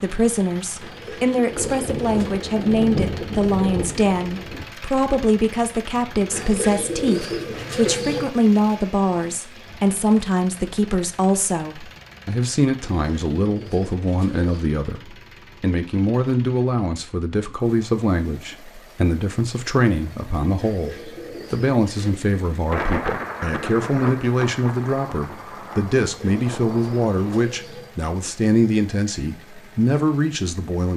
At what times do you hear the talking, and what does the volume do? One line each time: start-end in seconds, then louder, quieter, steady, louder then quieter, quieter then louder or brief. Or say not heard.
0.0-30.9 steady.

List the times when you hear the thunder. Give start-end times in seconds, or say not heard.
1.5-4.7, 22.7-27.4.